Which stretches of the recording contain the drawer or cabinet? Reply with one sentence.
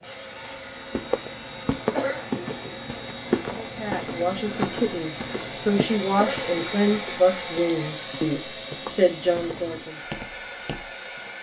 The drawer or cabinet can't be heard in this clip.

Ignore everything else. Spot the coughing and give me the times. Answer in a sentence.
The coughing can be heard from 1.9 to 2.7 s and from 6.2 to 7.0 s.